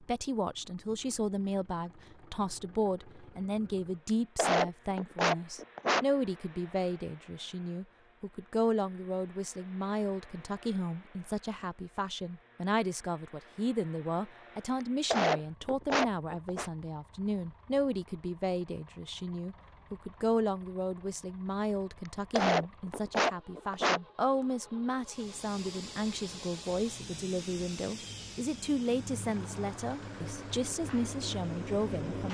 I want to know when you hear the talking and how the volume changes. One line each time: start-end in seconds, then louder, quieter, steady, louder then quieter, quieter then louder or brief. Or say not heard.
0.0-32.2 steady.